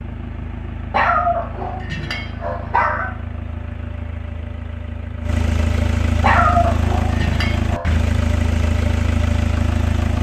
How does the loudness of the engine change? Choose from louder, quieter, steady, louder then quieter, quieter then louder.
louder.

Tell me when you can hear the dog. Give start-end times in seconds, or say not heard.
0.9-3.1, 6.2-7.8.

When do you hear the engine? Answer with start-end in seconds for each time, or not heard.
0.0-10.1.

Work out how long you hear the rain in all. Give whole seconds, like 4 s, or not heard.
not heard.